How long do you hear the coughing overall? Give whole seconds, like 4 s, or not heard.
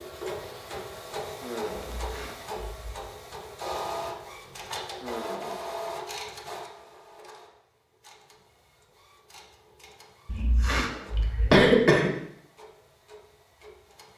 3 s.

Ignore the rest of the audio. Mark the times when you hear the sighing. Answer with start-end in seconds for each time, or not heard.
1.4-2.0, 5.0-5.7, 10.7-11.3.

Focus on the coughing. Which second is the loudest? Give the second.
12 s.